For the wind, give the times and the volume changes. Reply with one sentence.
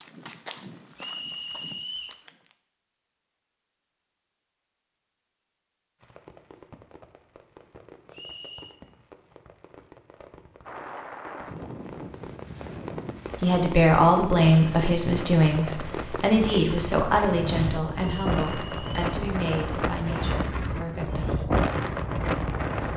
The wind can be heard from 10.7 to 22.9 s, getting louder.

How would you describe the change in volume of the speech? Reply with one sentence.
The volume of the speech goes down.